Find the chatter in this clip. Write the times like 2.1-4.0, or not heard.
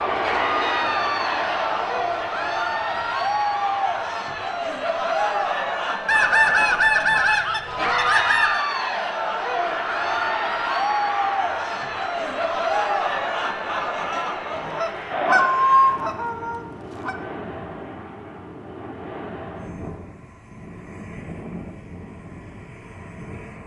0.1-15.6.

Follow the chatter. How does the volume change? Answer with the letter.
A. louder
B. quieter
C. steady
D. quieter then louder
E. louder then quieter
C.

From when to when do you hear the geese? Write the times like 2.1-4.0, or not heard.
6.0-8.6, 14.6-17.1.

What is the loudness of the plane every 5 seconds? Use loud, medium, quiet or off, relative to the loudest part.
loud, medium, loud, medium, medium.